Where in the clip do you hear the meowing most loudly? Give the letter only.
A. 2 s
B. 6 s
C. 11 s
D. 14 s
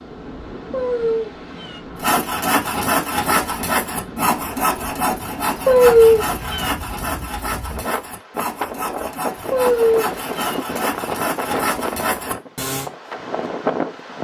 B.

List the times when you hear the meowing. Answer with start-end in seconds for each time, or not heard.
0.7-1.8, 5.7-6.8, 9.5-10.6.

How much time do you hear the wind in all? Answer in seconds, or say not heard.
14 s.